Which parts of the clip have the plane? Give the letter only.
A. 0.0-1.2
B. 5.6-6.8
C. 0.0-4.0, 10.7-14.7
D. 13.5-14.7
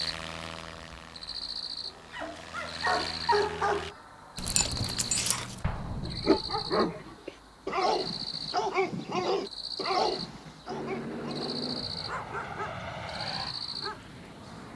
C.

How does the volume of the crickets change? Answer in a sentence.
The volume of the crickets stays about the same.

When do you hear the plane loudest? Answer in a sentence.
The volume of the plane peaks at 11 seconds.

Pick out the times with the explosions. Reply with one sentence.
The explosions can be heard from 5.6 to 6.8 s.